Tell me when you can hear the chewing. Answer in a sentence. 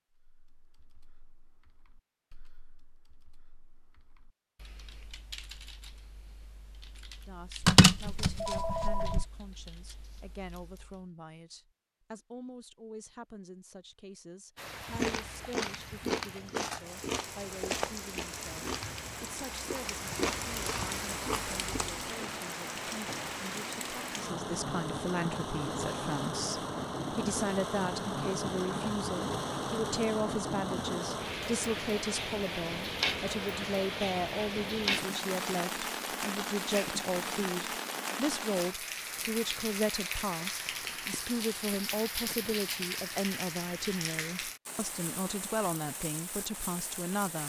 You can hear the chewing from 14.7 to 22.3 s.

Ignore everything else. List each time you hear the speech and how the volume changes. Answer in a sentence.
You can hear the speech from 7.2 to 47.4 s, getting louder.